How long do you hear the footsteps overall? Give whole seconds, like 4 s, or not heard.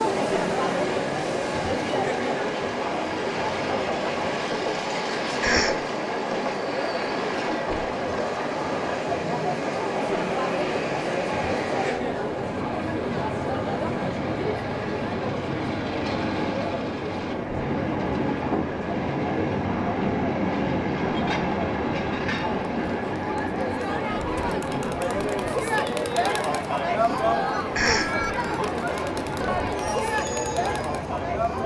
not heard.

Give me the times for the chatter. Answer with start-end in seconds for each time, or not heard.
0.0-31.6.